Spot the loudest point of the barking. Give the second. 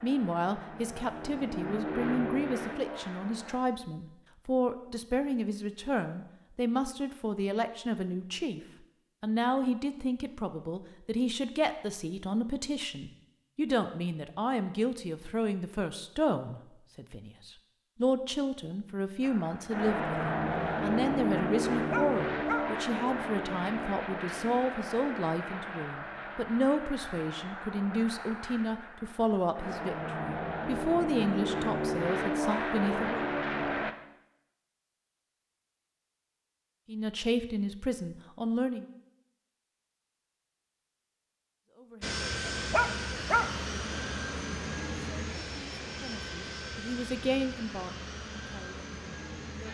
43 s.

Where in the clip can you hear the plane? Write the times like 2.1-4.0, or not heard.
0.0-3.6, 19.2-34.0, 42.0-49.7.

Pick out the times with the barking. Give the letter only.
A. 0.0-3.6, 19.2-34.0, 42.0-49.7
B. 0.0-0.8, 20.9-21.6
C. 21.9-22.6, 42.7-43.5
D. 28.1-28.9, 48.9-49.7
C.